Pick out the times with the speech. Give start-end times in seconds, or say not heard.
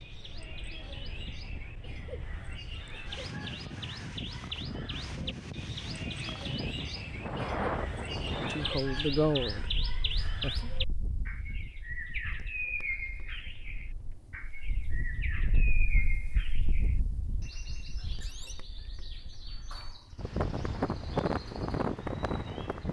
8.4-10.7.